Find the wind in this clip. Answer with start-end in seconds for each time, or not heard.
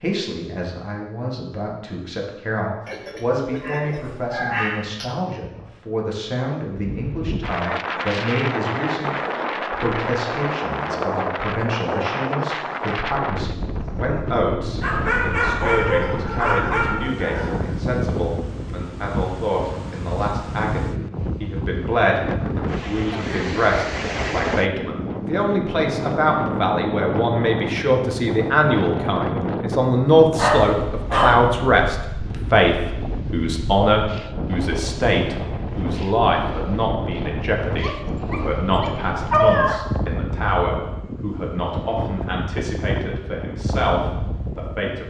6.7-45.0.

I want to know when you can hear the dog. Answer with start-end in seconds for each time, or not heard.
2.9-5.2, 14.8-17.6, 30.4-31.5, 37.8-39.8.